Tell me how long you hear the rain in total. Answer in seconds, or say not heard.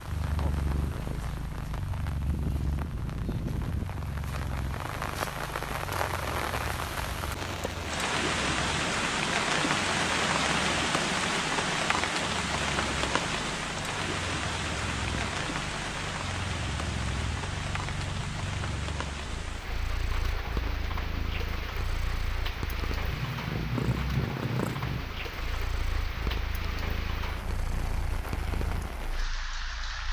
30 s.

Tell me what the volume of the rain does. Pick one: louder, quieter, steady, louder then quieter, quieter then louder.
louder then quieter.